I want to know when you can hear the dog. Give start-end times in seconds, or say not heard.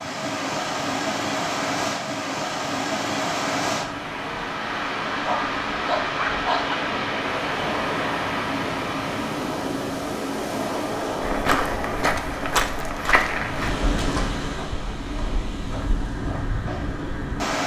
5.2-6.8.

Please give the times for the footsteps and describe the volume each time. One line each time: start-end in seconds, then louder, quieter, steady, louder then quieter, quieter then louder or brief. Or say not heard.
11.2-17.1 quieter.